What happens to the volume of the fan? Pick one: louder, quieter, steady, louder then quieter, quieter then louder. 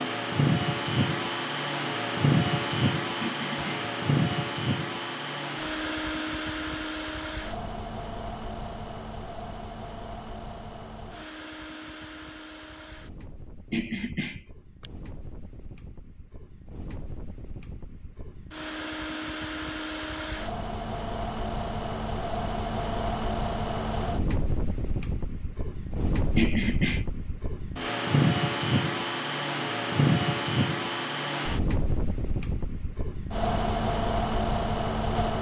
quieter then louder.